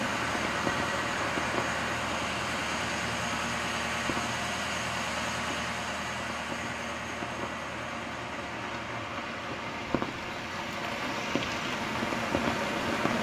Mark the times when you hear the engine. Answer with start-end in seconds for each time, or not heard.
0.0-13.1.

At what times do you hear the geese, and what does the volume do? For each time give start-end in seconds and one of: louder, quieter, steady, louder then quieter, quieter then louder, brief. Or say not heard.
not heard.